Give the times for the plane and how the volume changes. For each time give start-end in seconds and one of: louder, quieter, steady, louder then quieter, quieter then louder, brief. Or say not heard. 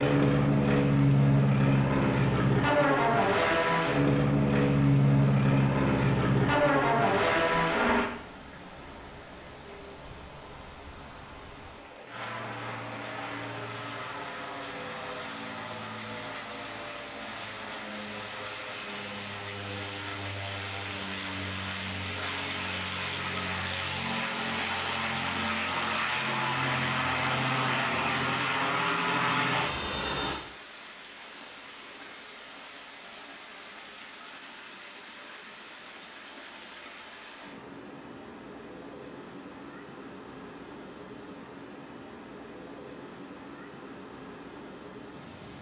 0.0-8.1 steady
12.1-30.4 louder.